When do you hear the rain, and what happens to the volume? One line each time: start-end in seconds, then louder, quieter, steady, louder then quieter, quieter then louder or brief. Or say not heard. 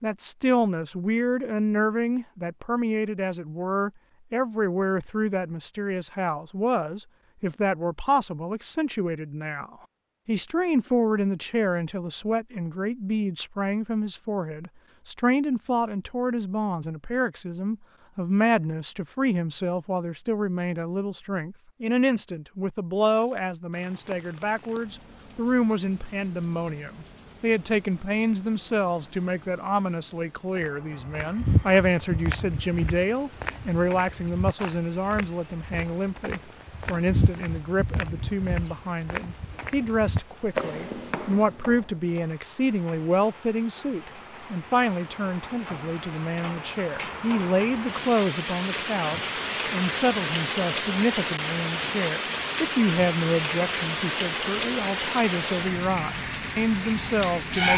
23.1-57.7 louder.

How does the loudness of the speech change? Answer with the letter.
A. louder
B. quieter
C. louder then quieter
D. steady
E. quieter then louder
D.